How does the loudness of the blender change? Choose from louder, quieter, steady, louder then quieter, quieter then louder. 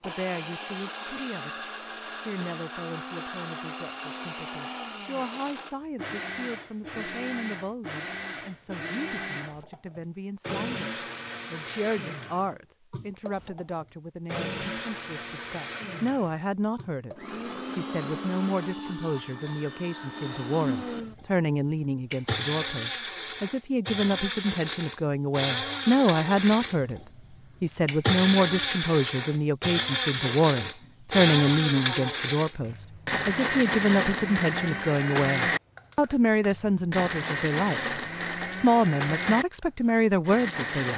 louder.